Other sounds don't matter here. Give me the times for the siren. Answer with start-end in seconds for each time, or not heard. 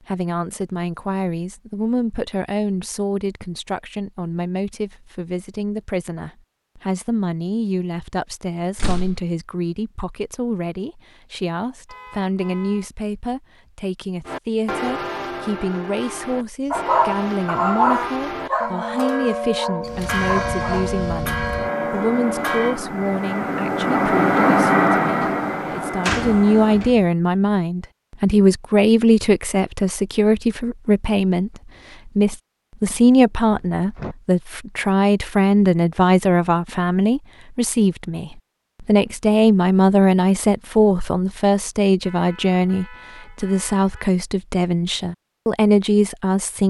not heard.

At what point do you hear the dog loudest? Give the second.
18 s.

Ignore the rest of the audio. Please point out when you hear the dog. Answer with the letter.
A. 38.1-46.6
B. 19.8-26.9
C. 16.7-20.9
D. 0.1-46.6
C.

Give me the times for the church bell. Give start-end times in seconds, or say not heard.
14.2-22.8.